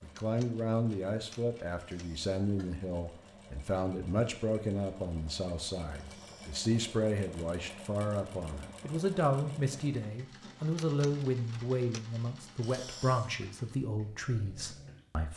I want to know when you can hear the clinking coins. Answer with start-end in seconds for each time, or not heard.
not heard.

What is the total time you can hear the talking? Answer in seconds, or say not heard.
15 s.